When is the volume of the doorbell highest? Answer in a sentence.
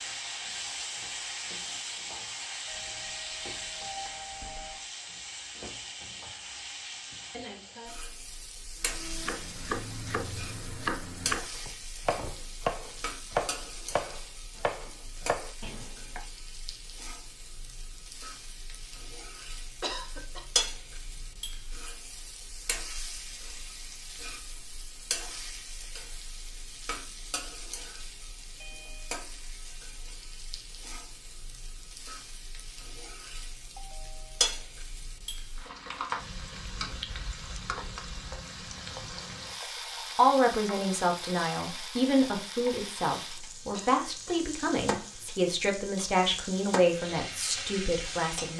The volume of the doorbell peaks at 4 seconds.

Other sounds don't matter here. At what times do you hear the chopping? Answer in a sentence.
You can hear the chopping from 8.8 to 16.2 s.